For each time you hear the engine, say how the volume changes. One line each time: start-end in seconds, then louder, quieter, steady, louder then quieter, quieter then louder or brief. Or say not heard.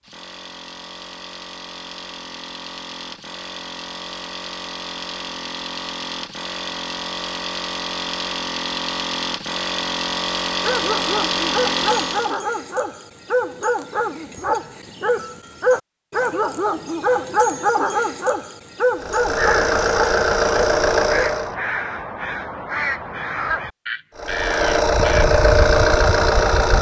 0.0-12.4 louder
19.0-21.6 brief
24.1-26.7 brief.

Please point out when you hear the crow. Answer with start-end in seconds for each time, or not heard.
19.4-25.2.